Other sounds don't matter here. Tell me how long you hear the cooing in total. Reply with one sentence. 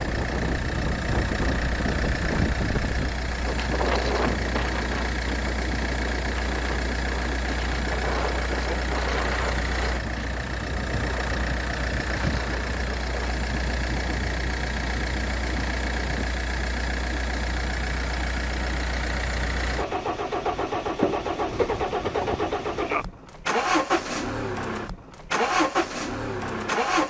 You can't hear the cooing here.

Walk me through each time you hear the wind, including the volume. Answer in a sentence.
The wind can be heard from 0.0 to 16.3 s, getting quieter.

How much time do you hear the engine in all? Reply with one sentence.
The engine can be heard for 27 seconds in total.